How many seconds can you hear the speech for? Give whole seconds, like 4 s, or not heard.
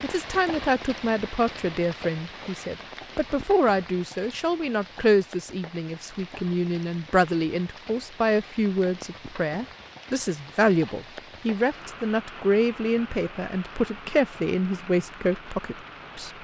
16 s.